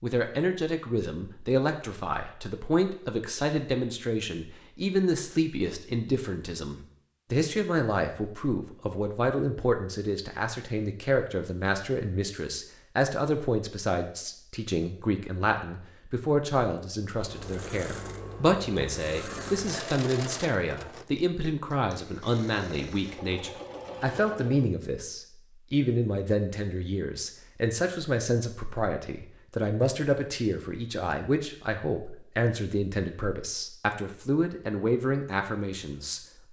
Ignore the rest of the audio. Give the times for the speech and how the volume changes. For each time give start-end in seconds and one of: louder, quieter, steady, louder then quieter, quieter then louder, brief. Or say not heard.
0.0-36.2 steady.